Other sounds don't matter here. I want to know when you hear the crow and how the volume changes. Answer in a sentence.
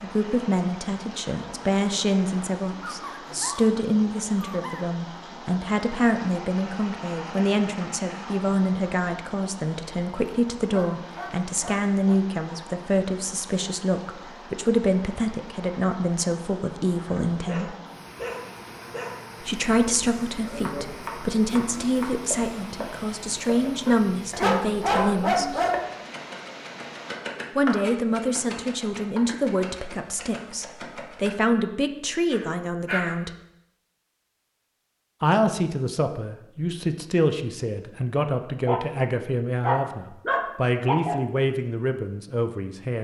You can't hear the crow here.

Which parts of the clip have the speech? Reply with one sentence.
You can hear the speech from 0.0 to 17.8 s, from 19.4 to 25.6 s, from 27.6 to 33.3 s and from 35.2 to 42.9 s.